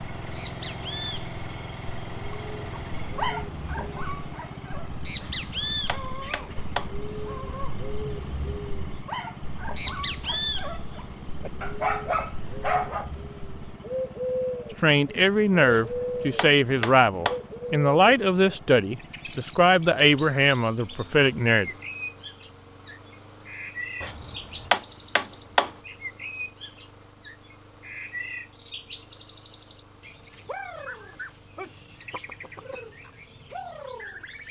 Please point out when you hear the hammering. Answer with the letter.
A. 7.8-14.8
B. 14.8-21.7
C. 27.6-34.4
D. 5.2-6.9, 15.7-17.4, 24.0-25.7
D.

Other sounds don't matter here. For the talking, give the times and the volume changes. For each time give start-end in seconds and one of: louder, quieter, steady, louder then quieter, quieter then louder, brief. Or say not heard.
14.8-21.7 steady.